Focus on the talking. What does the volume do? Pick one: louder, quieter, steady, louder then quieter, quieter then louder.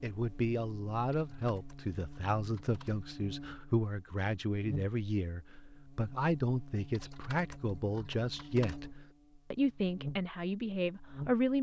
steady.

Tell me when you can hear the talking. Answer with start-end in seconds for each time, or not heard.
0.0-11.5.